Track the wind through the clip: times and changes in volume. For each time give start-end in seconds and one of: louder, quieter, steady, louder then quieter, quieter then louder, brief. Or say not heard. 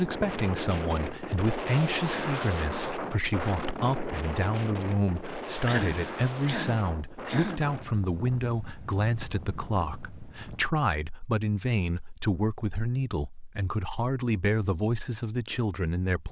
0.0-10.8 quieter.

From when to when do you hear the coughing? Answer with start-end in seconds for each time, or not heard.
5.7-7.7.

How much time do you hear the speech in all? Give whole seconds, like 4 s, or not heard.
16 s.